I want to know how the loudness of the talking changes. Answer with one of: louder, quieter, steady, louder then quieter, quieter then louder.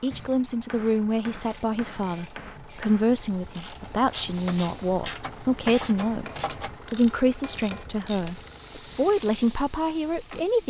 steady.